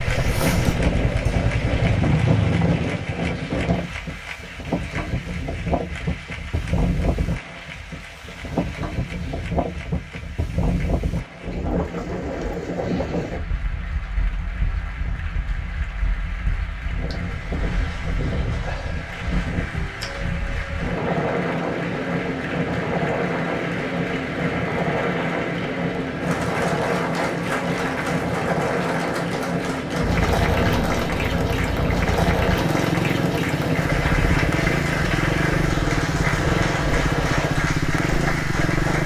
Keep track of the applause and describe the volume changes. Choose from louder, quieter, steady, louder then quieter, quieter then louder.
quieter then louder.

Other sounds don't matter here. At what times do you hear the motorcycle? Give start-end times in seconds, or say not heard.
0.0-3.1, 30.0-39.0.